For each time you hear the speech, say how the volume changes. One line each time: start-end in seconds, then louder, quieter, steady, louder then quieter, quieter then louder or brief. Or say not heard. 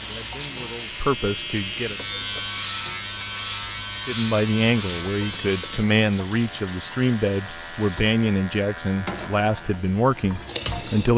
0.0-1.9 brief
4.0-11.1 steady.